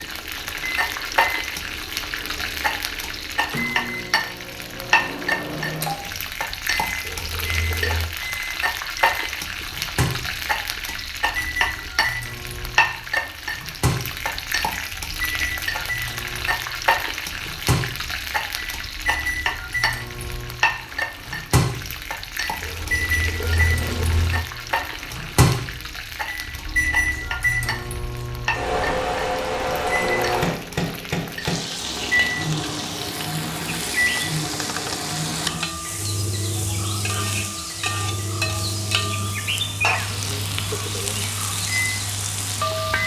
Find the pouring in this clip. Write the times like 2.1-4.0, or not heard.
7.0-8.2, 22.6-24.4.